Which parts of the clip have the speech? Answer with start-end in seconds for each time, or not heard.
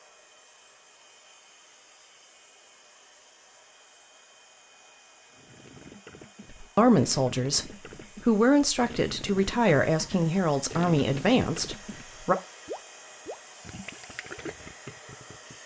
6.5-12.3.